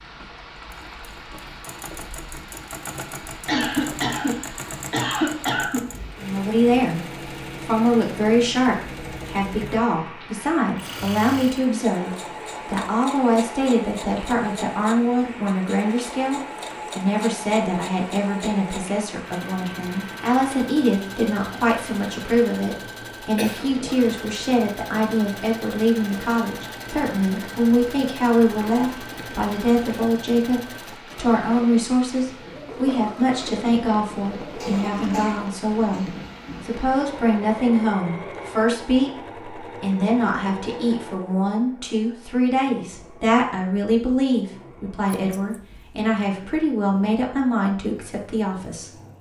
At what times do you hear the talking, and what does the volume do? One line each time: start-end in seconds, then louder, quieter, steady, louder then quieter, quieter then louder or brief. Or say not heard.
6.2-48.9 steady.